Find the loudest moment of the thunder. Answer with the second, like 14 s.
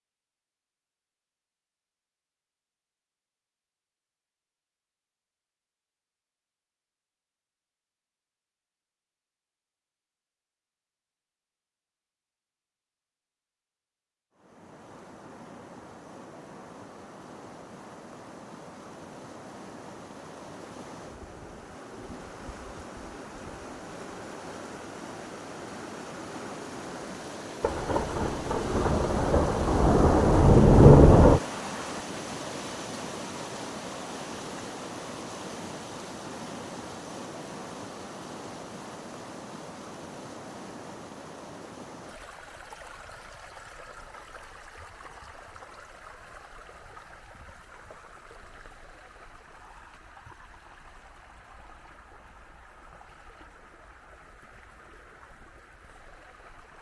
31 s.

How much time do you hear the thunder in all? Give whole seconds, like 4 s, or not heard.
4 s.